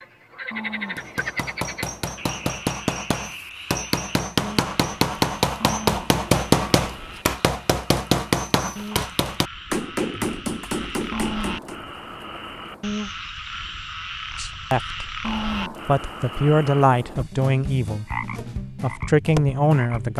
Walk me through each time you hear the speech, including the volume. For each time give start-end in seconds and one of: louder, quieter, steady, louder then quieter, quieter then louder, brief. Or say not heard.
14.3-15.2 brief
15.8-20.1 quieter then louder.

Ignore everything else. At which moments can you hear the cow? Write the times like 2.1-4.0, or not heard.
0.5-2.5, 5.6-7.3, 11.1-12.8, 15.2-17.2.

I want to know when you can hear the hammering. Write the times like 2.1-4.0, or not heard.
0.9-11.8.